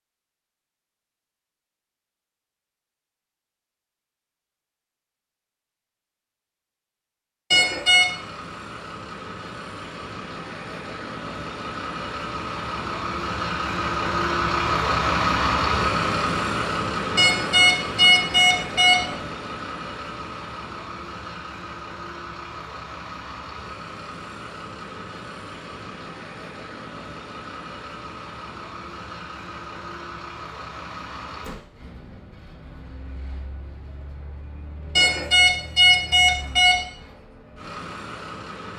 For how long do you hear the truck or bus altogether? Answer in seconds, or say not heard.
31 s.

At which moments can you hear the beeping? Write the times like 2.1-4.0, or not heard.
7.5-8.1, 17.1-19.1, 35.0-36.8.